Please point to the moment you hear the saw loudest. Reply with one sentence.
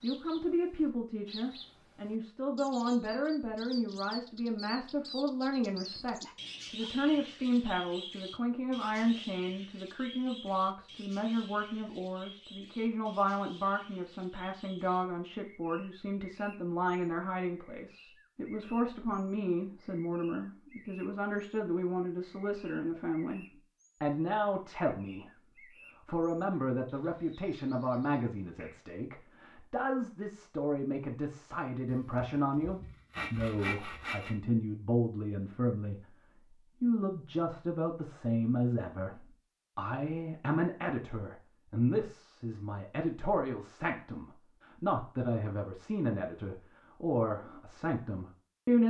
The volume of the saw peaks at 34 seconds.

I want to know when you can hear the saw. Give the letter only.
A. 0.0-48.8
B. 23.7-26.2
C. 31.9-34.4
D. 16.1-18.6
C.